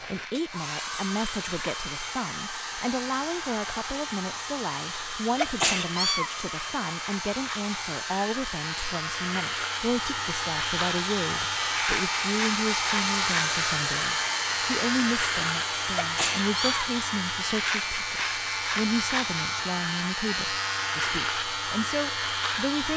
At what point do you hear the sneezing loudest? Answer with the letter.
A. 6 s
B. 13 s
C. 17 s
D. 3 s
A.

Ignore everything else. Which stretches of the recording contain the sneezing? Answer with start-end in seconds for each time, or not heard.
5.3-6.3, 15.9-16.9.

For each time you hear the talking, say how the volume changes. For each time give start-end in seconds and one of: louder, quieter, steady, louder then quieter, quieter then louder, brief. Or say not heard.
0.0-22.9 steady.